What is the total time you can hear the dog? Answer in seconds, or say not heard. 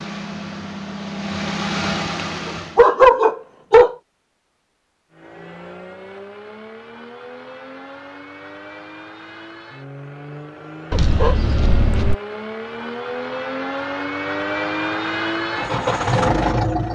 3 s.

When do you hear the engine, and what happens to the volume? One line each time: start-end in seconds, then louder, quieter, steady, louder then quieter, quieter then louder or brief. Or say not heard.
0.0-2.9 brief
5.1-16.8 louder.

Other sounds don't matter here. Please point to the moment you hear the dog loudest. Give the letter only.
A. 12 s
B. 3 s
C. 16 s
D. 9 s
B.